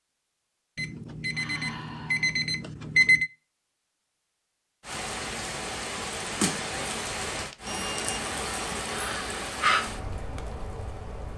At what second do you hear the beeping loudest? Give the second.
3 s.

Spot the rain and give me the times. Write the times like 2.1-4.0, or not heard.
4.8-11.3.